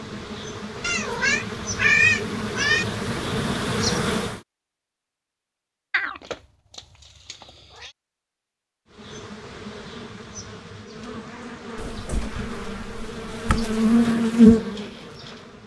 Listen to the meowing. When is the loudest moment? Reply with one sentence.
The loudest moment of the meowing is at 2 seconds.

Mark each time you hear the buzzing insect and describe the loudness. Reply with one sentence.
The buzzing insect can be heard from 0.0 to 4.4 s, getting louder; and from 8.9 to 15.6 s, getting louder.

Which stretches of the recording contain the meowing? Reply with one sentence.
You can hear the meowing from 0.8 to 2.9 s, from 5.9 to 7.9 s and from 11.8 to 13.8 s.